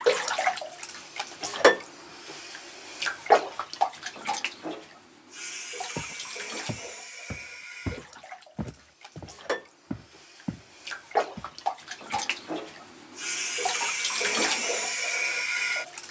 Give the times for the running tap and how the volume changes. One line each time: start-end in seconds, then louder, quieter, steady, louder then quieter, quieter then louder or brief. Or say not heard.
0.0-16.0 quieter then louder.